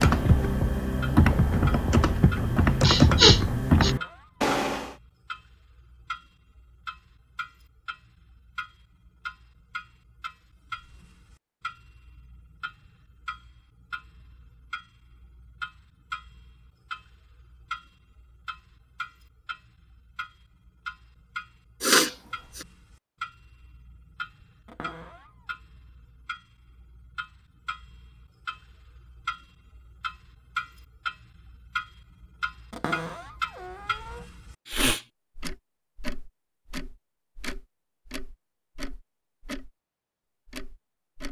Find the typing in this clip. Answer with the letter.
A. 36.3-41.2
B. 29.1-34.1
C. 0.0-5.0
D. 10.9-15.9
C.